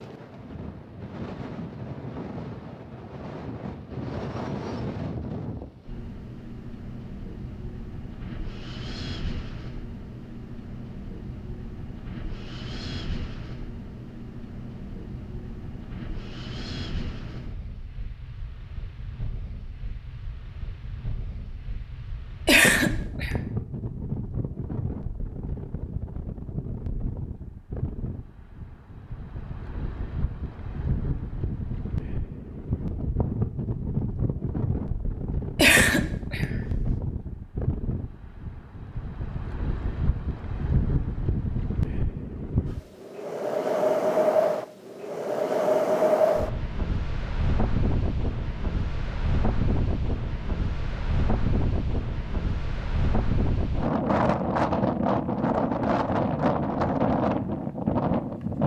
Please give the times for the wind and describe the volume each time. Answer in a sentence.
You can hear the wind from 0.0 to 58.6 s, getting louder.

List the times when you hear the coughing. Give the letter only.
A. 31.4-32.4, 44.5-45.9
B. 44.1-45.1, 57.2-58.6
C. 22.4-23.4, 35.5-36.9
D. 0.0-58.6
C.